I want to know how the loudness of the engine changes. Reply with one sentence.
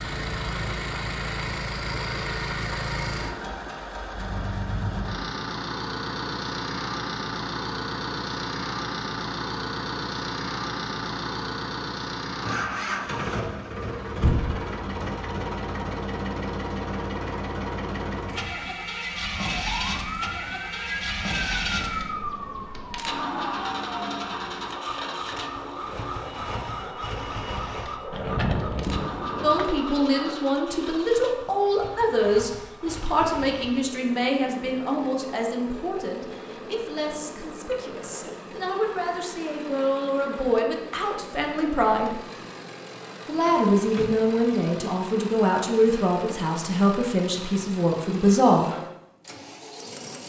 The loudness of the engine goes down.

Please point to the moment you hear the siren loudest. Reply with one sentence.
The volume of the siren peaks at 22 seconds.